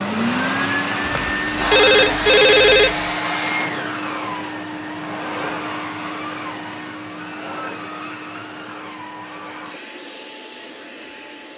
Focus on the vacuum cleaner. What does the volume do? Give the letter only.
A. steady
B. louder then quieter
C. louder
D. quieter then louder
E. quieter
E.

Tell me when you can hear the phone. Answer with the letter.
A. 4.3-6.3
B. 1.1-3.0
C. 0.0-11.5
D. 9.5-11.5
B.